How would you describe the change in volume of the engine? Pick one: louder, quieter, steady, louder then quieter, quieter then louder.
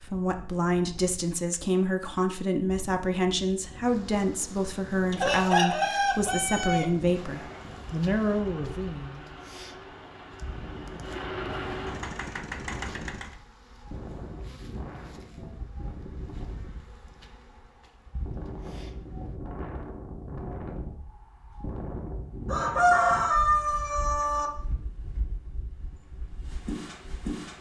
louder.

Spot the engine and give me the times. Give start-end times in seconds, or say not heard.
7.2-13.3.